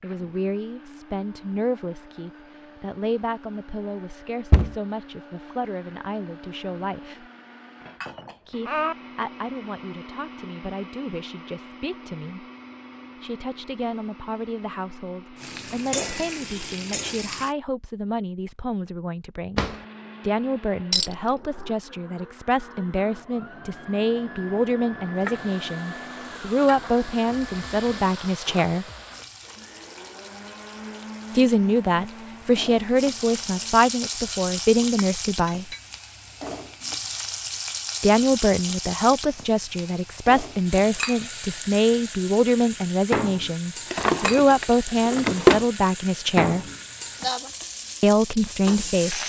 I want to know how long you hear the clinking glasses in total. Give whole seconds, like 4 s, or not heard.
3 s.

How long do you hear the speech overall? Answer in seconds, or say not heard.
41 s.